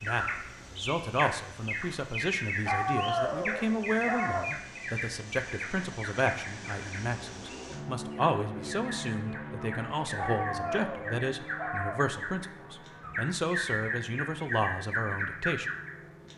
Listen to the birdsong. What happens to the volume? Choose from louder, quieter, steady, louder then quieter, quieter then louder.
quieter then louder.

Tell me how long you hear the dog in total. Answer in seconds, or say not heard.
4 s.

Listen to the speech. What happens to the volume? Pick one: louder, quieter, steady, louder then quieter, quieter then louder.
steady.